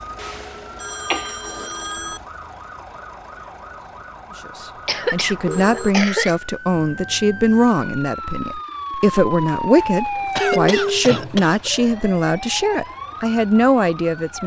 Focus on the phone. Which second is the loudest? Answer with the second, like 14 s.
11 s.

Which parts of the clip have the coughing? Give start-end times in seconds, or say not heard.
1.1-1.7, 4.8-6.3, 10.3-11.7.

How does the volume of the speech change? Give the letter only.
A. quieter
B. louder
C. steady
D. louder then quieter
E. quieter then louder
C.